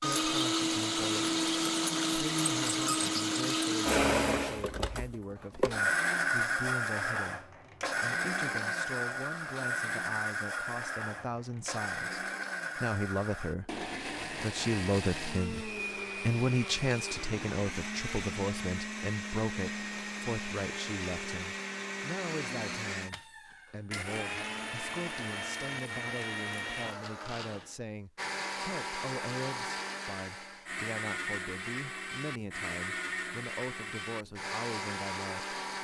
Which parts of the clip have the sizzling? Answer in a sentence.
You can't hear the sizzling here.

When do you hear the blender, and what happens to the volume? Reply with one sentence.
The blender can be heard from 0.0 to 35.7 s, getting quieter.